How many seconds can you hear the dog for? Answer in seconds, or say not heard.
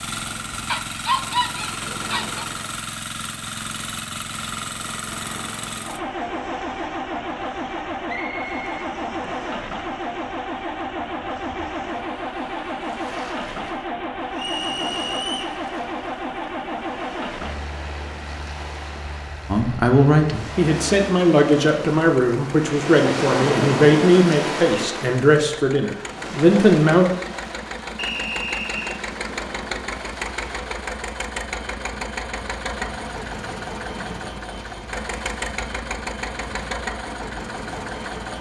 2 s.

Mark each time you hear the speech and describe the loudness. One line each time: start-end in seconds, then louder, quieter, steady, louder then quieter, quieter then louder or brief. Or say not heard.
19.4-27.1 steady.